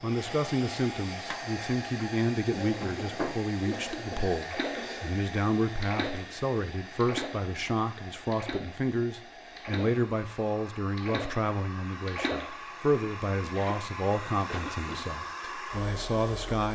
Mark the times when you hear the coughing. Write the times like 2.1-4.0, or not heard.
2.5-5.2, 14.4-15.1.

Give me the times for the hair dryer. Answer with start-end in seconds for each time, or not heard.
0.0-16.7.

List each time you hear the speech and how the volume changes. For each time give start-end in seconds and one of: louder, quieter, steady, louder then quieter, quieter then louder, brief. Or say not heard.
0.0-16.7 steady.